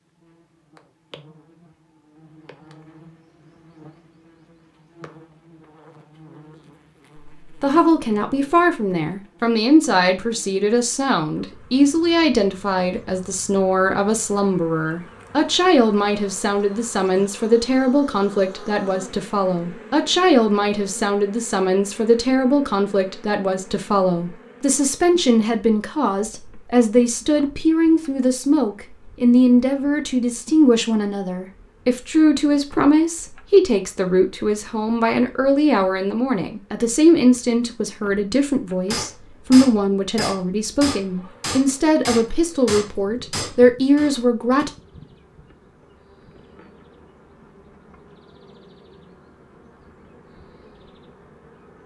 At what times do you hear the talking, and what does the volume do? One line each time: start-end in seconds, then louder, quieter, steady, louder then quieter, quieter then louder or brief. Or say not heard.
7.5-44.7 steady.